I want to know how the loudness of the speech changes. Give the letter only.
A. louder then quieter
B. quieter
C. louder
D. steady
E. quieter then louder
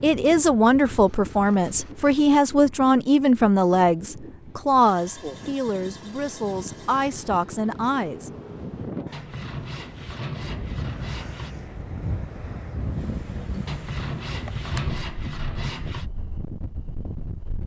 B.